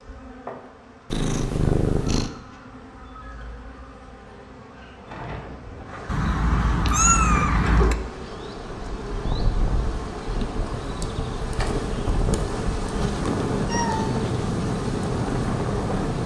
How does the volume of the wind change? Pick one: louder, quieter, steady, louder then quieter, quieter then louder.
louder.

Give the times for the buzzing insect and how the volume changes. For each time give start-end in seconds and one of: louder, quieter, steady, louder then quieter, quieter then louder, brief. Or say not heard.
0.0-16.2 louder.